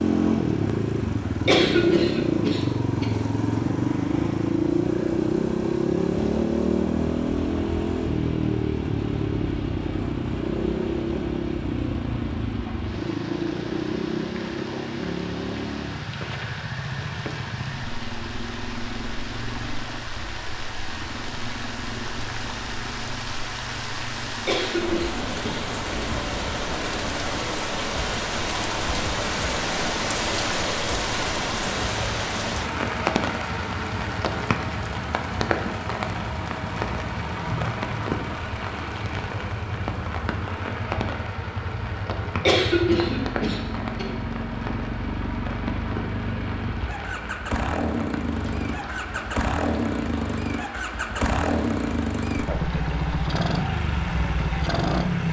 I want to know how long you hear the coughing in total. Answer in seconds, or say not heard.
5 s.